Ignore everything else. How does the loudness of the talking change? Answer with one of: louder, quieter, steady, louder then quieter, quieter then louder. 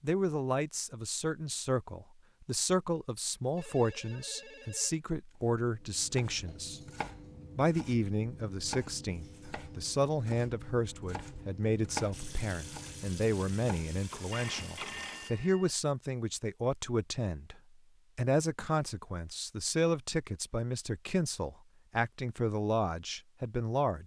steady.